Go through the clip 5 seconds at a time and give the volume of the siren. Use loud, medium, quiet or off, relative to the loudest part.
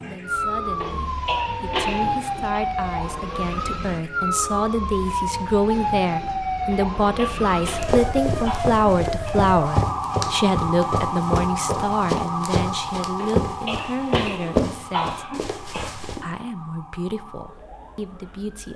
loud, loud, loud, quiet.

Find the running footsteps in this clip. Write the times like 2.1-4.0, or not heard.
7.8-16.2.